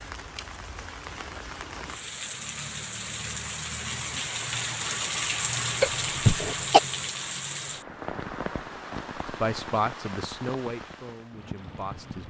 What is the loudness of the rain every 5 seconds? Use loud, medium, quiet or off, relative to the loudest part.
loud, loud, medium.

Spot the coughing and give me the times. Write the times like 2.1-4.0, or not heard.
5.8-6.8.